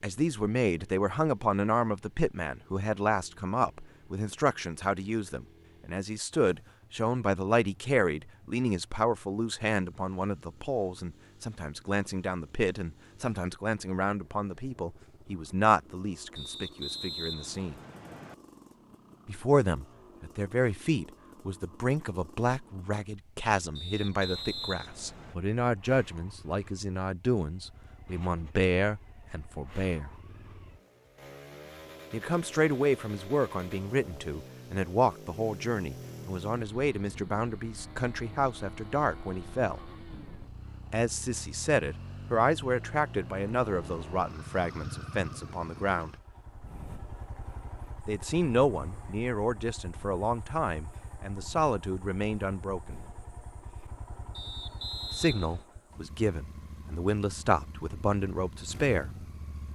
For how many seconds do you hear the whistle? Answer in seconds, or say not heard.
5 s.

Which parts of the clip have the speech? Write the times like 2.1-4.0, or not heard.
0.0-17.8, 19.2-30.1, 32.1-39.8, 40.9-46.1, 48.0-53.0, 55.1-59.1.